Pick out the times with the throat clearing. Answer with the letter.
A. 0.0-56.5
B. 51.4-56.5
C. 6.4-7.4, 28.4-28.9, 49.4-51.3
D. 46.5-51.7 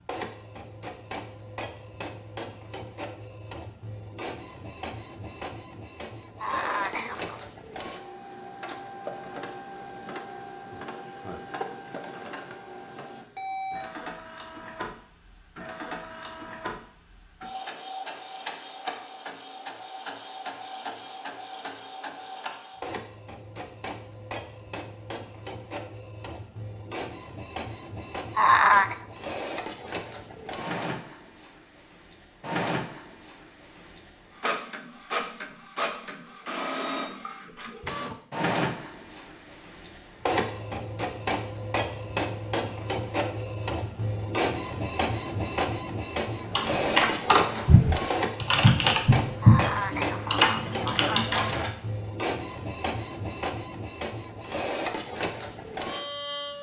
C.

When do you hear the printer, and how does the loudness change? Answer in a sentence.
You can hear the printer from 0.0 to 56.5 s, getting louder.